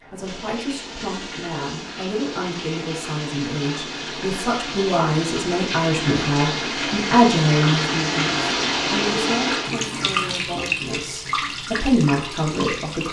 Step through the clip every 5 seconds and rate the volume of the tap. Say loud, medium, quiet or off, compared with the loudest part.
medium, loud, loud.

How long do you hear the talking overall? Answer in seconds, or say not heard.
13 s.